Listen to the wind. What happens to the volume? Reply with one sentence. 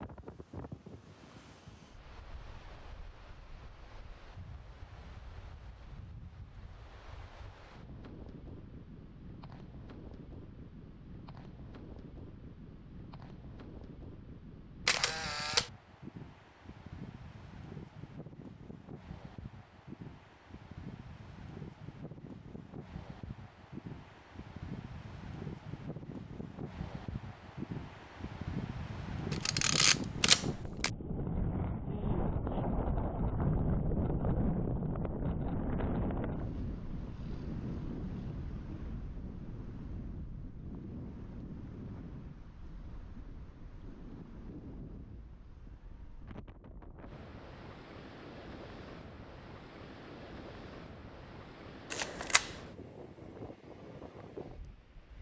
The volume of the wind goes up, then down.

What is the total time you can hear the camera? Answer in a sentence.
You can hear the camera for 3 seconds altogether.